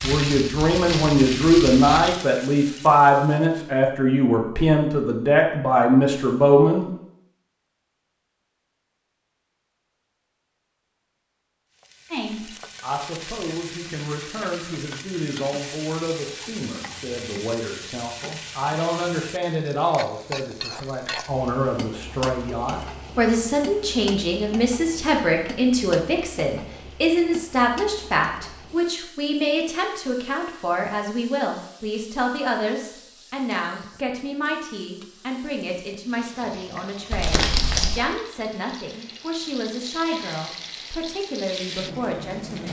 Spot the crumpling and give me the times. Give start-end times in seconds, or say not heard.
0.0-2.1, 37.1-38.0.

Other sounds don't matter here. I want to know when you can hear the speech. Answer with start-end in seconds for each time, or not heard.
0.0-6.9, 12.1-42.6.